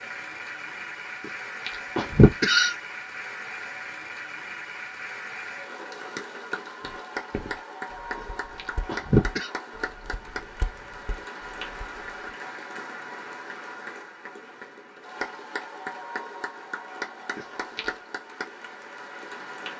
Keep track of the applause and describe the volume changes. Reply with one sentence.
The loudness of the applause stays about the same.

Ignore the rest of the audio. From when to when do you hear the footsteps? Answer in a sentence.
You can hear the footsteps from 6.8 to 12.2 s.